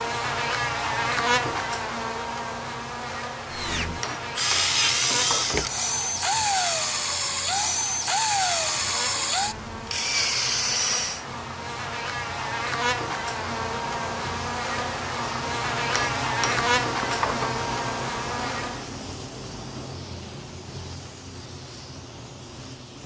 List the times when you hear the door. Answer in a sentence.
You can't hear the door here.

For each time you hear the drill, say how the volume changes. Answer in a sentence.
The drill can be heard from 3.5 to 11.2 s, at a steady volume.